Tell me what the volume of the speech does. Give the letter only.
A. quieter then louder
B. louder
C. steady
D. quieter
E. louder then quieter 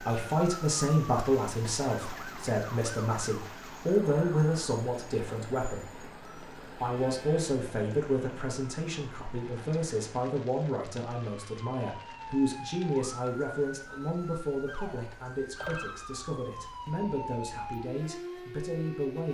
D.